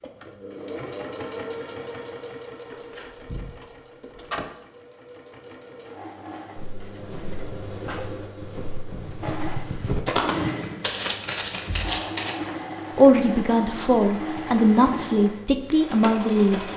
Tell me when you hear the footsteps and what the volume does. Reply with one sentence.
You can hear the footsteps from 6.5 to 12.3 s, getting louder.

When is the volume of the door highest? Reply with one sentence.
The volume of the door peaks at 4 seconds.